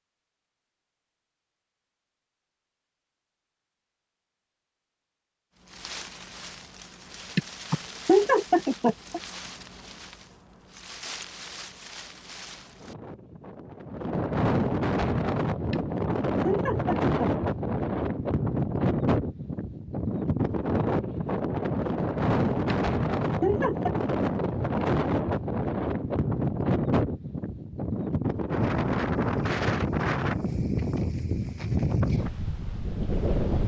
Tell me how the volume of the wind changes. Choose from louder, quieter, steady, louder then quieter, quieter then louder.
louder.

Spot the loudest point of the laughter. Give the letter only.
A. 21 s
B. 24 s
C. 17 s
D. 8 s
D.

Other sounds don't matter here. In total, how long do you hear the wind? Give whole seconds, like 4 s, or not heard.
28 s.